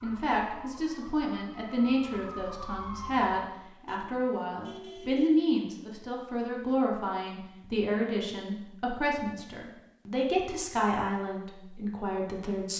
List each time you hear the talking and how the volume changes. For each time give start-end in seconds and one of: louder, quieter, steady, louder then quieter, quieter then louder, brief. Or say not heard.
0.0-12.7 steady.